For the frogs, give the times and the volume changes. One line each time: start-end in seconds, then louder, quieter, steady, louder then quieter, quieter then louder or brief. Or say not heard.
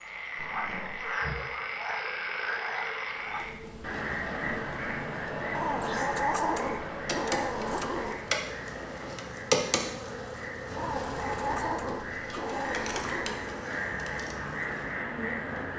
0.0-15.7 quieter then louder.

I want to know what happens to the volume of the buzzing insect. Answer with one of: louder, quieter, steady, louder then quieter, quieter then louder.
louder then quieter.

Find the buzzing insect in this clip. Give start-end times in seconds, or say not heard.
3.0-15.7.